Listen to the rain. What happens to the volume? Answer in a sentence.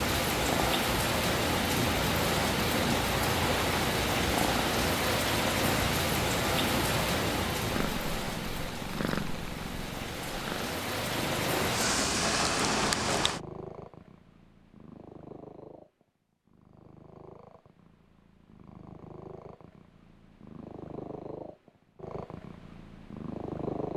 The loudness of the rain goes down, then up.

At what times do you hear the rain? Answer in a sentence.
The rain can be heard from 0.0 to 13.4 s.